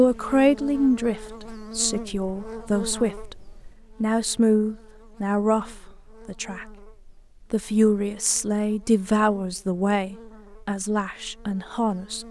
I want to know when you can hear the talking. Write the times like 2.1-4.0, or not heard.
0.0-3.4, 4.0-6.8, 7.5-12.2.